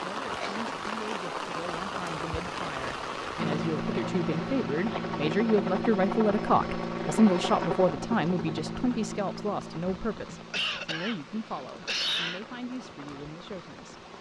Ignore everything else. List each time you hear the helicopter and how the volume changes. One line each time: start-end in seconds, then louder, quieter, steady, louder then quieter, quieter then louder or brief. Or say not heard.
3.4-14.1 quieter.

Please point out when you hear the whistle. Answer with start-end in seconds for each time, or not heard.
not heard.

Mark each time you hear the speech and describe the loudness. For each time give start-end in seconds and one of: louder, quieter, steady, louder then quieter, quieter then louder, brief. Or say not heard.
0.0-14.0 louder then quieter.